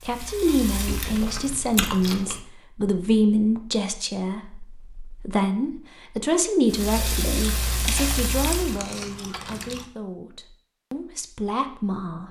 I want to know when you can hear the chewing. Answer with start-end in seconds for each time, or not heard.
0.8-2.5, 7.4-9.8.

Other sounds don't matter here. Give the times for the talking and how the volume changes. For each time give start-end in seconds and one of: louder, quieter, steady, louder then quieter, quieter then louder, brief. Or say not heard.
0.1-12.2 quieter.